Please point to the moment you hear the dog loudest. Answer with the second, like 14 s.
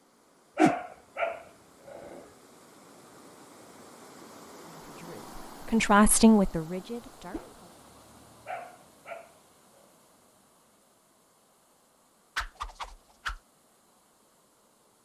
1 s.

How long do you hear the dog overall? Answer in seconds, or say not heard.
3 s.